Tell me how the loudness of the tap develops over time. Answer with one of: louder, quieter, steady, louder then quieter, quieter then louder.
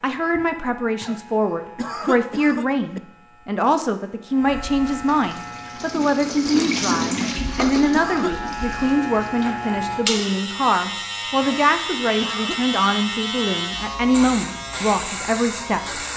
louder then quieter.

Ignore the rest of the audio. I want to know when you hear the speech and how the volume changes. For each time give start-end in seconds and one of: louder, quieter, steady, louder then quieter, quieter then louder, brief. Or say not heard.
0.0-16.1 steady.